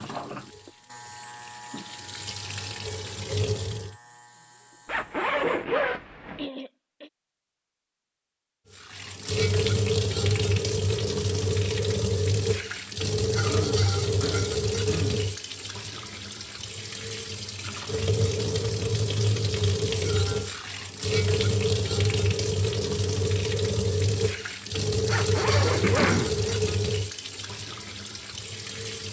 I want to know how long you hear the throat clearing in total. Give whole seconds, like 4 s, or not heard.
3 s.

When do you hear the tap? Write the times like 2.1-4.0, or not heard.
0.0-4.0, 8.7-29.0.